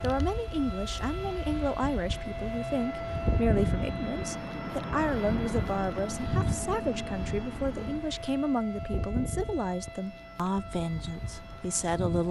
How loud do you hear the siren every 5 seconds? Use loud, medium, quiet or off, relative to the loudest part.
loud, loud, medium.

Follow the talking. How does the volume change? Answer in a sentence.
The volume of the talking stays about the same.